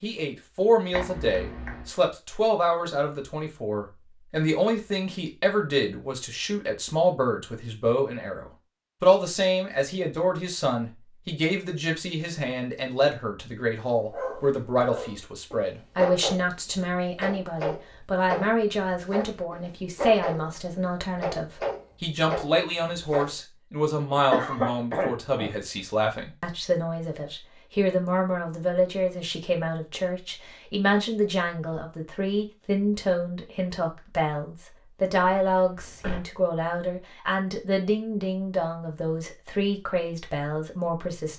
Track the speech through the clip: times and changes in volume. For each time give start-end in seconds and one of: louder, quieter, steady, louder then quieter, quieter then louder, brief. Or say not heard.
0.0-41.3 steady.